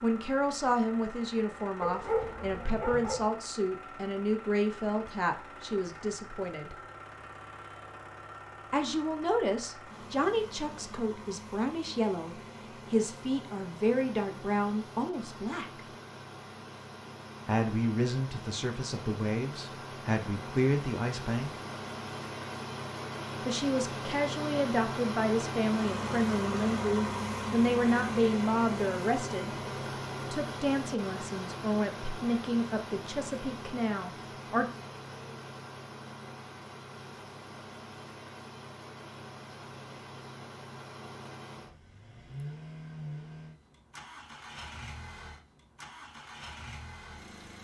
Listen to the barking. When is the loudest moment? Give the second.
2 s.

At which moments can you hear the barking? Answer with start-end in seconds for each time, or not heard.
1.8-3.4.